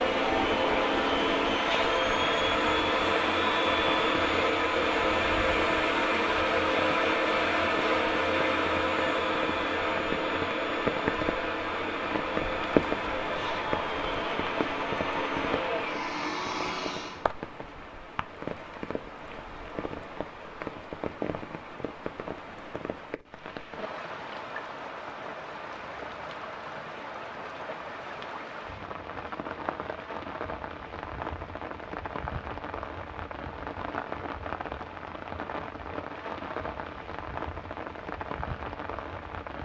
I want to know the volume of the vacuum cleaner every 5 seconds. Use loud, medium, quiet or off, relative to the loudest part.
loud, loud, medium, medium, off, off, off, off.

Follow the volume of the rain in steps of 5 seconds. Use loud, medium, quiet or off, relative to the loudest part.
medium, medium, loud, medium, medium, medium, medium, medium.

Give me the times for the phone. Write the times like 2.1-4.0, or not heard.
not heard.